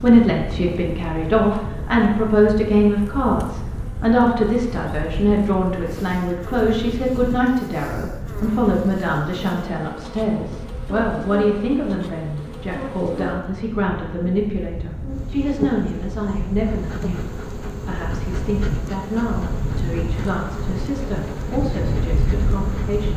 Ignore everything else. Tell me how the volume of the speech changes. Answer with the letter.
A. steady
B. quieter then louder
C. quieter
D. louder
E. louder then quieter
C.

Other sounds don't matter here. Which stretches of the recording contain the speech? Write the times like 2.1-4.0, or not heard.
0.0-23.1.